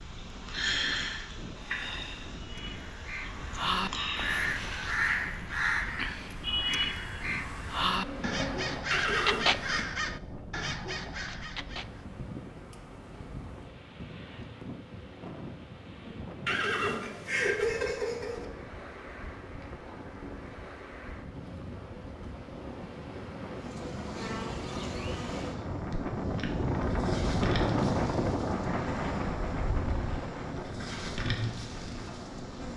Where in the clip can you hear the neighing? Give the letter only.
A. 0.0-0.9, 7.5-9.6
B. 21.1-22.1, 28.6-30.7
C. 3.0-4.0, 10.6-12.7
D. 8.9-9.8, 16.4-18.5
D.